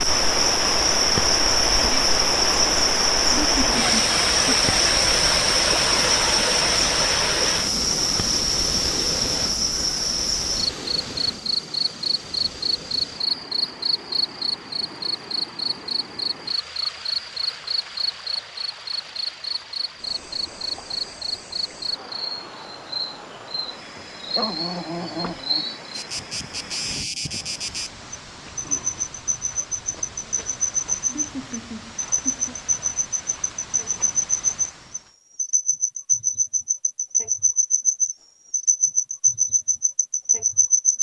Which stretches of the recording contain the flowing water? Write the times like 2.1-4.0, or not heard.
0.0-35.1.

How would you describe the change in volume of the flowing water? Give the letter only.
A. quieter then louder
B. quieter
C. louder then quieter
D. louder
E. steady
B.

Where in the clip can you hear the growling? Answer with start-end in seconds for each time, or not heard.
24.2-25.8.